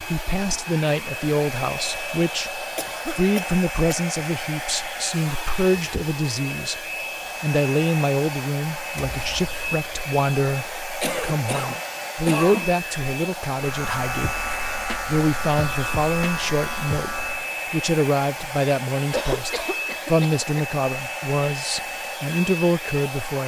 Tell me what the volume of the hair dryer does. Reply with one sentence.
The volume of the hair dryer stays about the same.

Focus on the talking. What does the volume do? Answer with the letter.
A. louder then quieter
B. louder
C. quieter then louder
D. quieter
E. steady
E.